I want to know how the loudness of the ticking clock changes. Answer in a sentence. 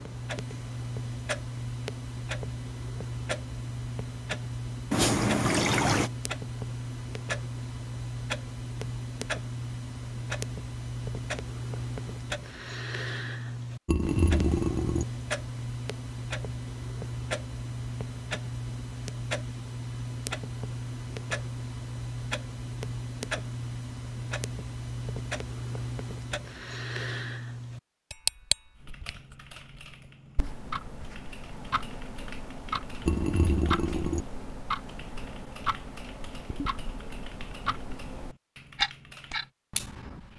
The loudness of the ticking clock stays about the same.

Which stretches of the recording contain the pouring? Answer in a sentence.
You can hear the pouring from 4.9 to 6.1 s, from 13.8 to 15.1 s and from 33.0 to 34.2 s.